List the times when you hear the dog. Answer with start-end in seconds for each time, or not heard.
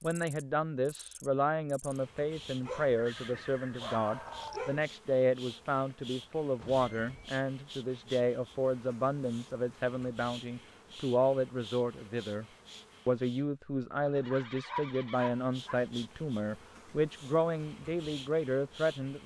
2.6-4.8, 14.3-15.8.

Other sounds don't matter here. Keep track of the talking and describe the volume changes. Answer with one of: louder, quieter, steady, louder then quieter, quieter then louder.
steady.